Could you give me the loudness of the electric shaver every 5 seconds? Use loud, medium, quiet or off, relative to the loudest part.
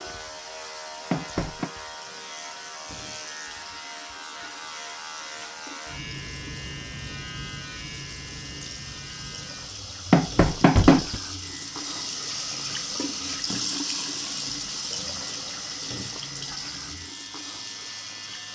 loud, loud, medium, medium.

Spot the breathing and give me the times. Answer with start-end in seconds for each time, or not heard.
not heard.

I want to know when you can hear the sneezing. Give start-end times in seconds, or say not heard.
not heard.